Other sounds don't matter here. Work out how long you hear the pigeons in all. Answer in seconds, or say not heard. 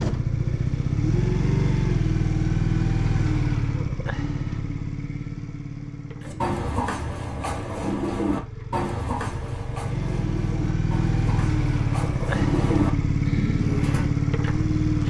8 s.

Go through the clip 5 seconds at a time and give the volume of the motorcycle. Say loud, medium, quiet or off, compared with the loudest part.
loud, medium, loud.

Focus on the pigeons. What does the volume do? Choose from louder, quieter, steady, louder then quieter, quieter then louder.
quieter then louder.